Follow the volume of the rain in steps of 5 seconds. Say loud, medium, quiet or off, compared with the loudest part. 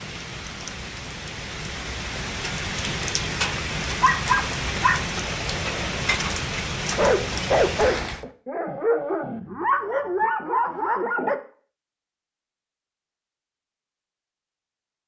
loud, loud, off.